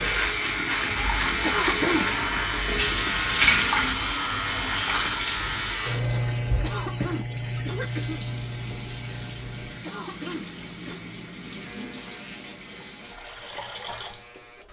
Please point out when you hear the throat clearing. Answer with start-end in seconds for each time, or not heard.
1.4-2.0, 6.6-8.2, 9.8-11.0.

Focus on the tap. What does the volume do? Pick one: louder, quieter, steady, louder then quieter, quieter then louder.
quieter.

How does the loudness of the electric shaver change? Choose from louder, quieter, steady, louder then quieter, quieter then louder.
quieter.